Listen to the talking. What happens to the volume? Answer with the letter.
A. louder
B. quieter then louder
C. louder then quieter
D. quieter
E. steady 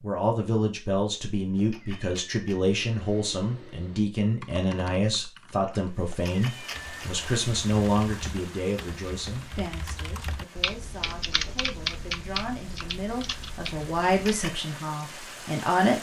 B.